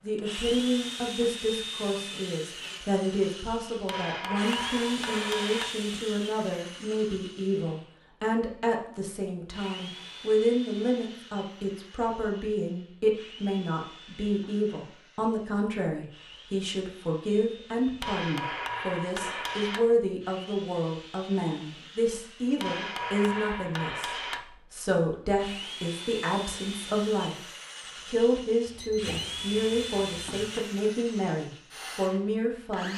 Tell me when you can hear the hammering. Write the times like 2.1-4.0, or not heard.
3.9-5.7, 18.0-19.8, 22.6-24.4.